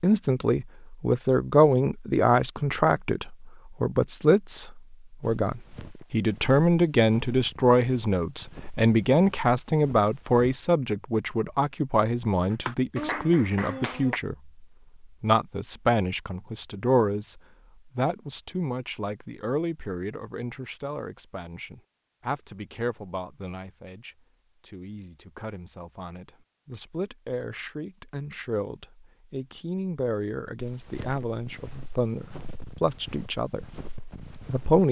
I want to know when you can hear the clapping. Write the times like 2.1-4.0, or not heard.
12.5-14.2.